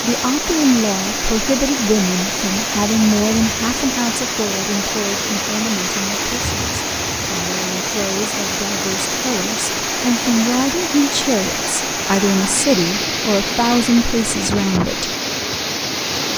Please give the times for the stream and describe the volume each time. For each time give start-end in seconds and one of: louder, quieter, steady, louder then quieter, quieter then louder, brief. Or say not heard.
0.0-16.3 steady.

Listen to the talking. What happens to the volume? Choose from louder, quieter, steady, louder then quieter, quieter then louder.
quieter then louder.